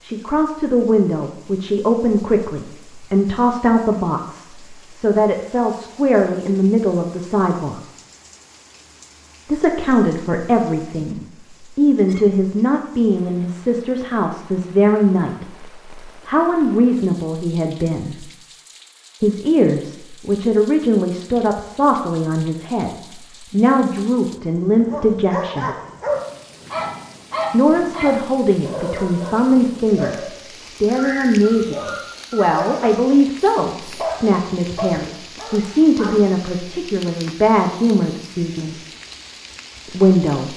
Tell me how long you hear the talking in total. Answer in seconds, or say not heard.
35 s.